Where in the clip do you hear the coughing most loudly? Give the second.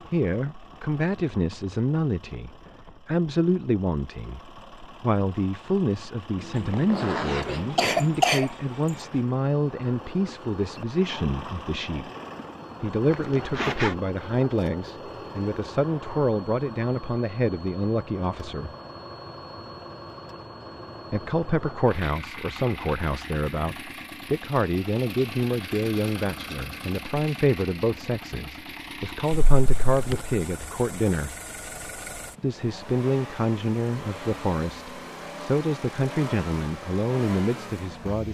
8 s.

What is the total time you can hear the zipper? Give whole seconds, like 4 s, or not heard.
3 s.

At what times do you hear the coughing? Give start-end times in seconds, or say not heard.
6.5-9.1.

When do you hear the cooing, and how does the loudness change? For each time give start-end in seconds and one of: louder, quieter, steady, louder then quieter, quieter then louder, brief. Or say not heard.
not heard.